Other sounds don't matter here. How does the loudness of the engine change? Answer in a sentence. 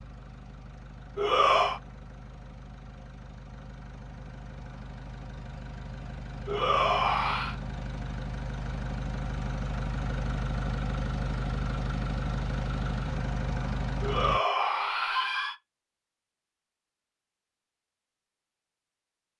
The volume of the engine goes up.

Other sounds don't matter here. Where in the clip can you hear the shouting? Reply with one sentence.
You can hear the shouting from 1.1 to 1.8 s, from 6.5 to 7.5 s and from 14.0 to 15.6 s.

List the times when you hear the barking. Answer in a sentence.
You can't hear the barking here.